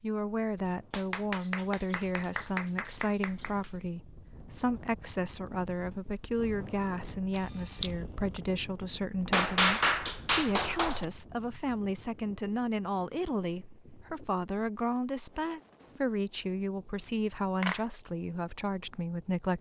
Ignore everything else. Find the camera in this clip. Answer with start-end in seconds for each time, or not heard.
7.3-8.0.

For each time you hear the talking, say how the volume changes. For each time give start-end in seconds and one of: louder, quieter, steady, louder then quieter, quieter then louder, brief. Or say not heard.
0.0-19.5 steady.